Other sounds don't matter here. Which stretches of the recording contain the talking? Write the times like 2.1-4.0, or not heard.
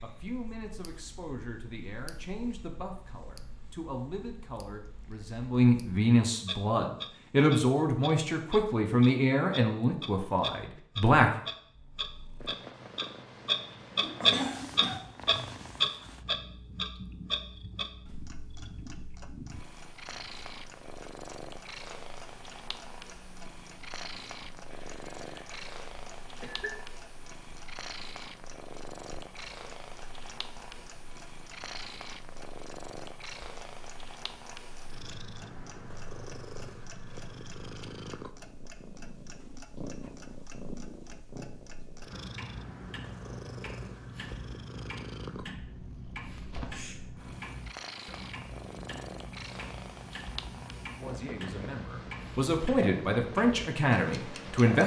0.0-11.3, 51.0-54.8.